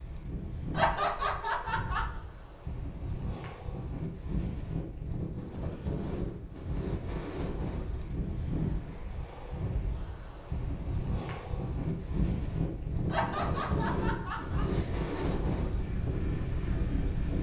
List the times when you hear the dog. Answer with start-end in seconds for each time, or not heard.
not heard.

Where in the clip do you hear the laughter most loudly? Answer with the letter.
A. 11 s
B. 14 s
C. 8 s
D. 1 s
D.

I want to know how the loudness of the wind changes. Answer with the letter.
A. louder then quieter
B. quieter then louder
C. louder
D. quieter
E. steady
C.